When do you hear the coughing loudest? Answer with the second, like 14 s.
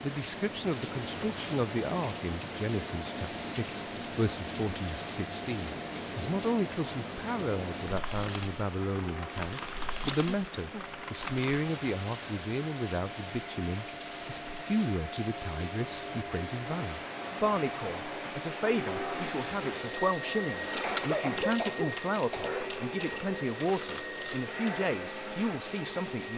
21 s.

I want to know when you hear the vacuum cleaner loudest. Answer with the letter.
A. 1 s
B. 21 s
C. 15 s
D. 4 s
B.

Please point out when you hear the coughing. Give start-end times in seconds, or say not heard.
10.1-10.8, 20.7-22.5.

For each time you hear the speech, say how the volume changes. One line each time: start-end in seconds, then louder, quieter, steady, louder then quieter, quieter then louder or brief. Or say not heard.
0.0-26.3 steady.